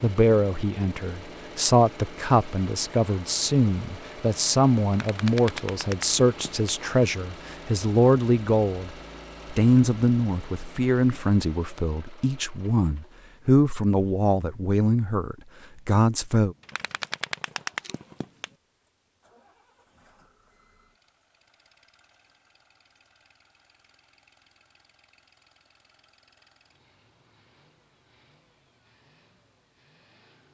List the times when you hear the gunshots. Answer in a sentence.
You can hear the gunshots from 5.0 to 6.8 s and from 16.6 to 18.6 s.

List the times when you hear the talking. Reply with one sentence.
The talking can be heard from 0.0 to 8.9 s and from 9.5 to 16.6 s.